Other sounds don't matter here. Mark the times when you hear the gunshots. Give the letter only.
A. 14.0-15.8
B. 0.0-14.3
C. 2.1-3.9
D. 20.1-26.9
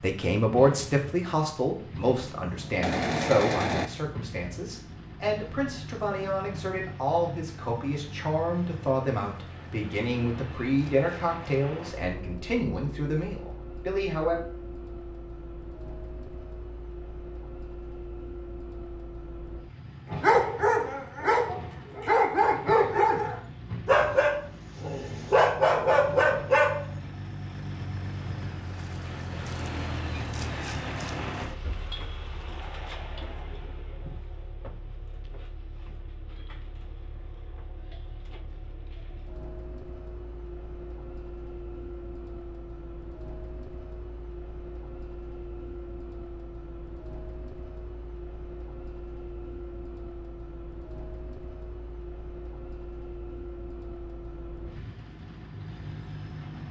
C.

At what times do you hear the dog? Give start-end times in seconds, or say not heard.
20.1-26.9.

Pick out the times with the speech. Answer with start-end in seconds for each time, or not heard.
0.0-14.3.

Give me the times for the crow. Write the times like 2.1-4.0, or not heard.
not heard.